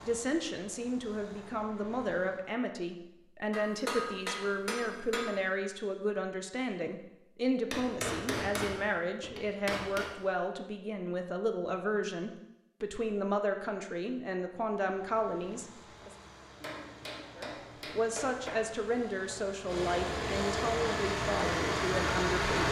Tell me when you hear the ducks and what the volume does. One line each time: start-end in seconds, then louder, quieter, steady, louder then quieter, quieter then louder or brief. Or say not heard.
not heard.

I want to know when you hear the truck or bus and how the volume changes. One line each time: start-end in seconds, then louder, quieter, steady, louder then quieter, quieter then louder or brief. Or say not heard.
0.0-2.4 brief
14.8-22.6 louder.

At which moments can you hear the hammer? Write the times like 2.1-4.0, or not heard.
3.5-5.4, 7.7-10.1, 16.6-18.6.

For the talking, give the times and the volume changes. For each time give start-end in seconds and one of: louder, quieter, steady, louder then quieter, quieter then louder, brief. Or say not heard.
0.0-16.1 steady
17.4-22.6 steady.